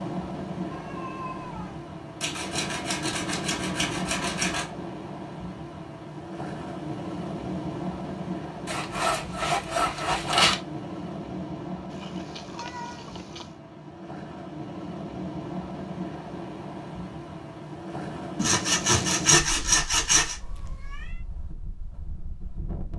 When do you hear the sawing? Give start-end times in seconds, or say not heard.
2.2-4.7, 8.7-10.6, 18.4-20.4.